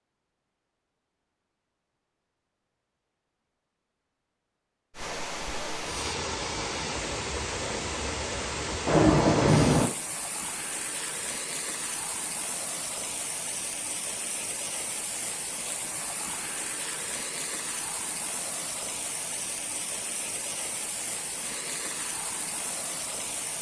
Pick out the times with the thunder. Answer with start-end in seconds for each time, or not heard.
8.8-9.9.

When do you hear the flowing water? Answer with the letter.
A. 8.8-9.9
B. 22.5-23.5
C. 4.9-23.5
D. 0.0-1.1
C.